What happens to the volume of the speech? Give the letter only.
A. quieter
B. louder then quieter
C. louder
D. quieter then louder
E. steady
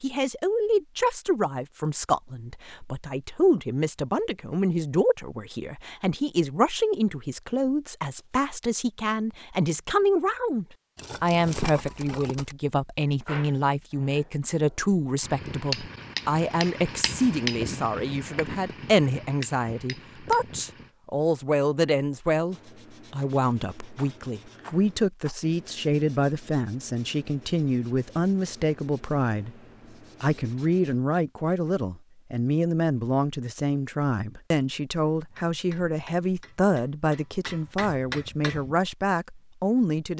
E.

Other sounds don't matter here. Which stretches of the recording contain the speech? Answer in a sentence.
You can hear the speech from 0.0 to 29.6 s and from 30.2 to 40.1 s.